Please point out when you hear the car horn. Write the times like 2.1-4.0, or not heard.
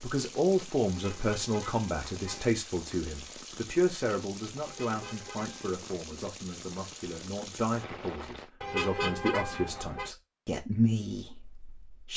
0.8-2.5, 4.6-5.7, 8.6-10.1.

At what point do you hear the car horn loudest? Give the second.
9 s.